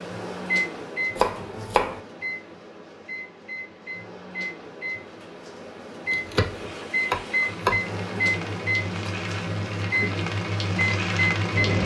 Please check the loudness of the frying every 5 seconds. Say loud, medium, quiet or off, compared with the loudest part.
off, medium, loud.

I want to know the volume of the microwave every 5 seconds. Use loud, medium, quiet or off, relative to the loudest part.
medium, loud, loud.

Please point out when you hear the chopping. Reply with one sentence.
You can hear the chopping from 1.1 to 2.0 s and from 6.1 to 7.8 s.